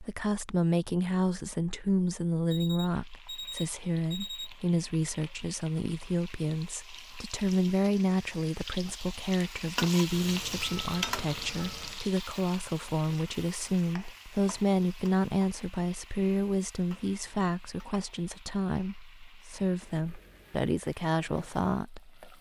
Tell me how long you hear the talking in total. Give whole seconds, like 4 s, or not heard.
22 s.